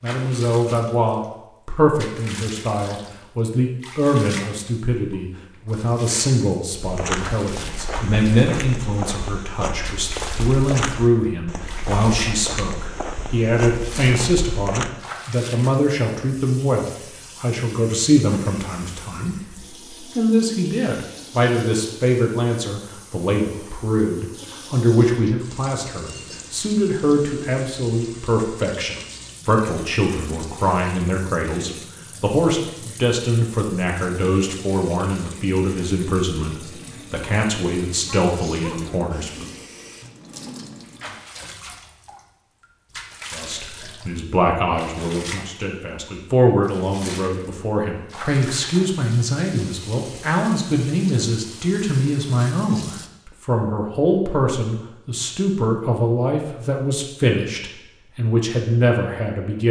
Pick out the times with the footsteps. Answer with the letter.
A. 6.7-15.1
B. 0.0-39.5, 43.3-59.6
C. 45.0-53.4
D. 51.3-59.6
A.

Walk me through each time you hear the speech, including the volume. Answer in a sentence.
The speech can be heard from 0.0 to 39.5 s, at a steady volume; and from 43.3 to 59.6 s, at a steady volume.